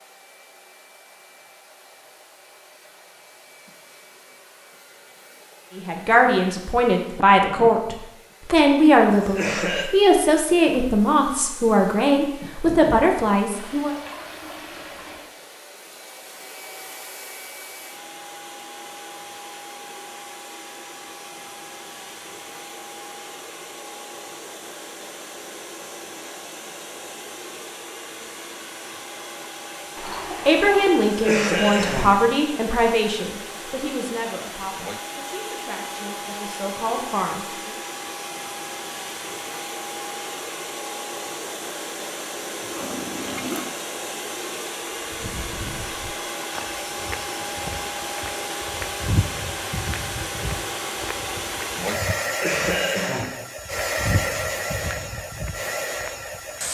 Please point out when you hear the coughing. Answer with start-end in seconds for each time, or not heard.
9.1-9.9, 31.1-32.2, 52.2-53.4.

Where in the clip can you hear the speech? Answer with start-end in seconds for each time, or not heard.
5.8-13.9, 30.4-37.8.